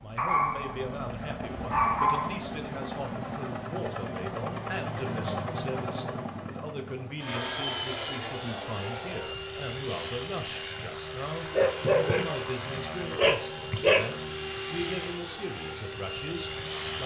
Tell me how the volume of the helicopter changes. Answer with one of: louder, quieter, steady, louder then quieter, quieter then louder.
steady.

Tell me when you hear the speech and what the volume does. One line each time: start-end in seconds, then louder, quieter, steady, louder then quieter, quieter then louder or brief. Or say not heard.
0.0-17.0 steady.